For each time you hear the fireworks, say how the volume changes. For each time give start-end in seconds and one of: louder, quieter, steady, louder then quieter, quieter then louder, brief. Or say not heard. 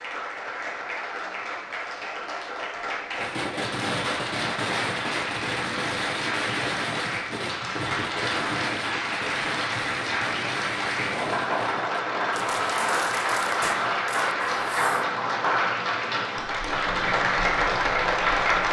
3.1-15.1 quieter.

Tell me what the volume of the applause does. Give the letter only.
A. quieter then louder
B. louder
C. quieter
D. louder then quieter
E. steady
B.